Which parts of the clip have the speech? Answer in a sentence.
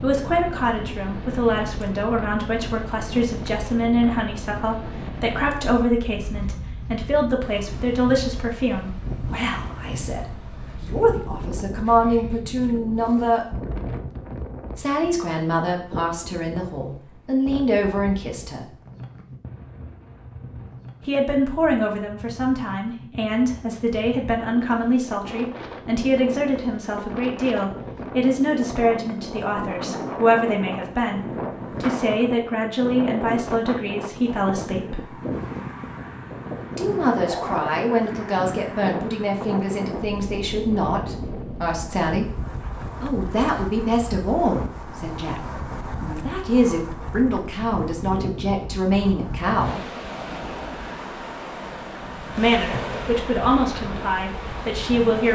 You can hear the speech from 0.0 to 13.4 s, from 14.8 to 18.6 s, from 21.1 to 35.1 s, from 36.8 to 42.3 s, from 43.0 to 49.8 s and from 52.4 to 55.3 s.